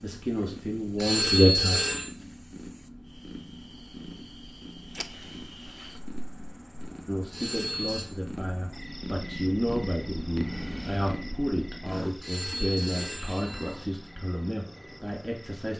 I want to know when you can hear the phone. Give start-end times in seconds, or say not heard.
0.9-2.1, 7.3-8.1, 12.2-13.8.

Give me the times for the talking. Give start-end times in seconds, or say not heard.
0.0-1.9, 7.0-15.7.